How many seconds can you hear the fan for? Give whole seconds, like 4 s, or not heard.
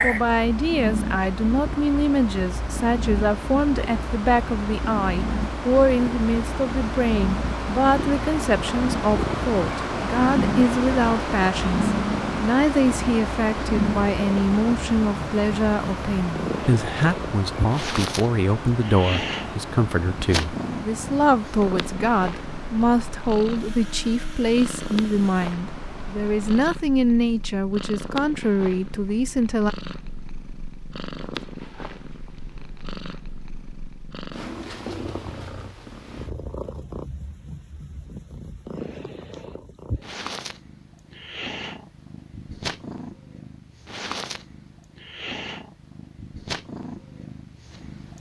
27 s.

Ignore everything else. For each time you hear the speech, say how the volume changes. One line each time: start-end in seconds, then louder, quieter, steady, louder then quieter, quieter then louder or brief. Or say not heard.
0.0-29.8 steady.